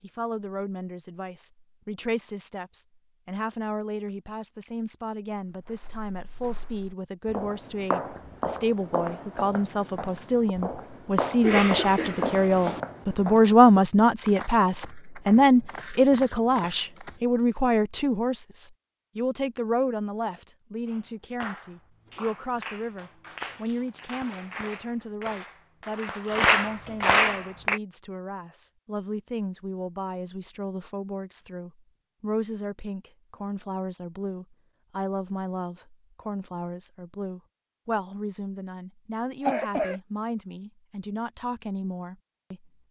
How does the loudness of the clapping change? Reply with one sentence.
The loudness of the clapping goes up.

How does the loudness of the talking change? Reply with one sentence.
The loudness of the talking goes up, then down.